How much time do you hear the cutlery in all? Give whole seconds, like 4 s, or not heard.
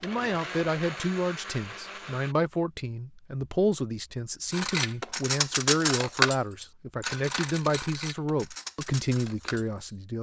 5 s.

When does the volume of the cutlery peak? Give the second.
6 s.